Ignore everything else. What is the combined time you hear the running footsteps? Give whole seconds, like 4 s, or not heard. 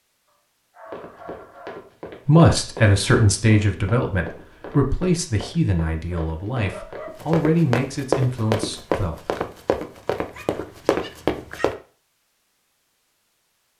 11 s.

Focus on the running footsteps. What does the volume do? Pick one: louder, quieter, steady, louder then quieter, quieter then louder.
louder.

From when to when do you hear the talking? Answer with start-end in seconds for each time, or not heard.
2.2-9.3.